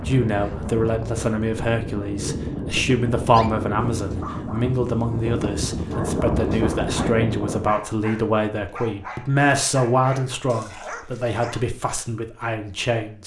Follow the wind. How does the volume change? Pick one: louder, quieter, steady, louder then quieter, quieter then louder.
louder.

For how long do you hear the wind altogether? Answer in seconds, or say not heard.
8 s.